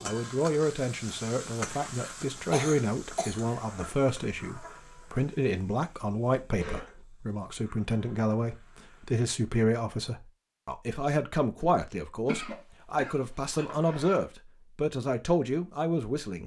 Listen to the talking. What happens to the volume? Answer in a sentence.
The volume of the talking stays about the same.